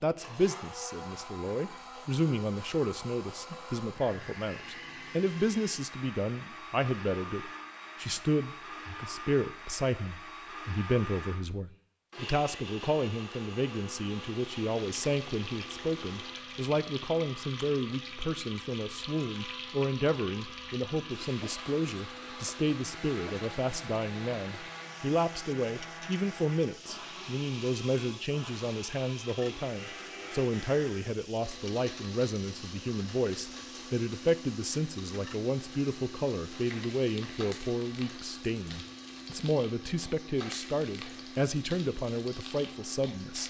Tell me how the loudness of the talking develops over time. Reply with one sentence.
The loudness of the talking stays about the same.